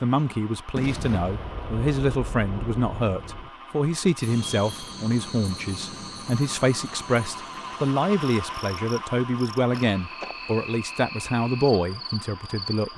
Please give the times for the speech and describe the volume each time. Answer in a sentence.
The speech can be heard from 0.0 to 12.9 s, at a steady volume.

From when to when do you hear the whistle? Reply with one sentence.
The whistle can't be heard in this clip.